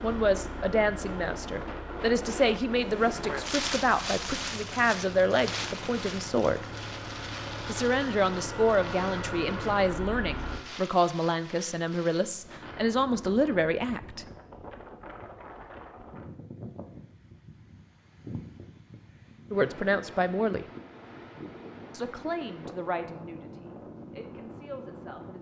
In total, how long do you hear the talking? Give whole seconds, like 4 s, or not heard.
18 s.